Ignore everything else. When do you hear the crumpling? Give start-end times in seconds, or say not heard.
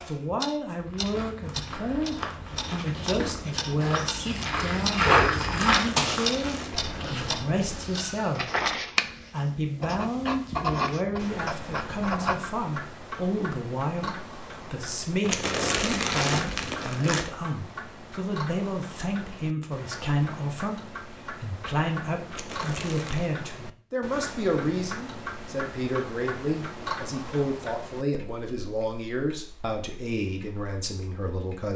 5.7-6.9, 15.2-17.2, 22.3-23.3.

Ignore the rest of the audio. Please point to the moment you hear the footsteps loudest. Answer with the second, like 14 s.
5 s.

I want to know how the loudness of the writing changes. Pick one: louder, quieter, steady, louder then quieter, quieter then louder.
louder.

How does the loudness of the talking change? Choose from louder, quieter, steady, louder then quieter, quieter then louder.
steady.